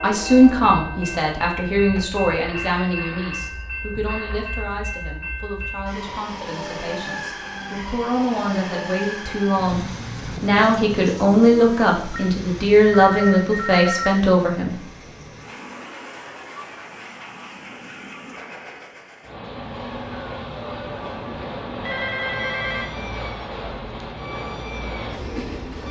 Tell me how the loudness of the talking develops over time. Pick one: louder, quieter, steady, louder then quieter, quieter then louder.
quieter then louder.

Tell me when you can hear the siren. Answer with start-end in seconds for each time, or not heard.
19.4-25.8.